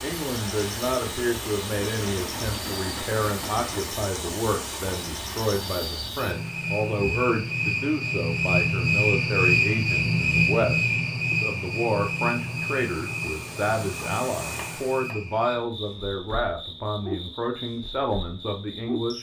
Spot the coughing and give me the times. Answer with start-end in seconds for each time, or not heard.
not heard.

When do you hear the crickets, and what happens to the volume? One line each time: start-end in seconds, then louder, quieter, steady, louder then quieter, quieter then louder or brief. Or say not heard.
0.0-19.1 louder then quieter.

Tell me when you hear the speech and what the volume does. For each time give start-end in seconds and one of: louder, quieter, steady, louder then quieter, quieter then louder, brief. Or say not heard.
0.0-19.1 steady.